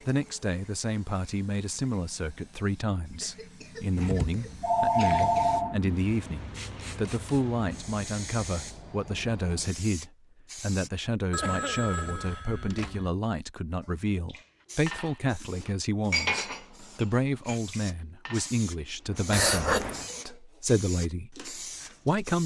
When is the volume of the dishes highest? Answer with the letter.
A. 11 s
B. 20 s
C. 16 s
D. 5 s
C.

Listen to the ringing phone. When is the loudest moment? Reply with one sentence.
The volume of the ringing phone peaks at 5 seconds.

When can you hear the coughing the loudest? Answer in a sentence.
The volume of the coughing peaks at 20 seconds.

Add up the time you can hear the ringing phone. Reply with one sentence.
The ringing phone can be heard for 5 seconds in total.